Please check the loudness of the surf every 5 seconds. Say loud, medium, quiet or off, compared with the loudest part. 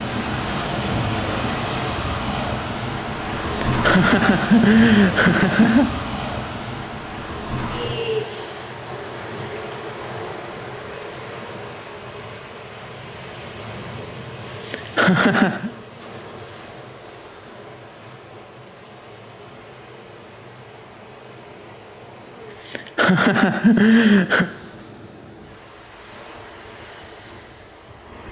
loud, loud, medium, quiet, quiet, quiet.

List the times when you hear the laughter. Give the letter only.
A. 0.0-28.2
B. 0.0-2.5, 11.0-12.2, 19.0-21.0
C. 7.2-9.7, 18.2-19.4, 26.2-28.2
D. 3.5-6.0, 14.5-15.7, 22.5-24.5
D.